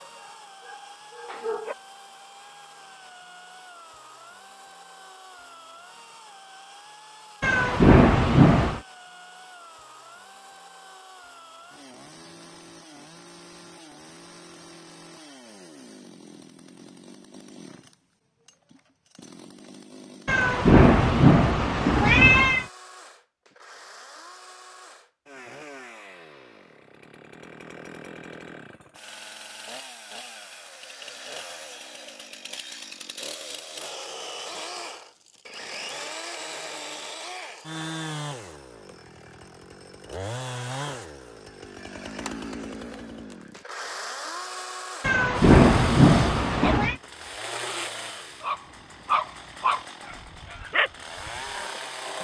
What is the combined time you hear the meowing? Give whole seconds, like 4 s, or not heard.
6 s.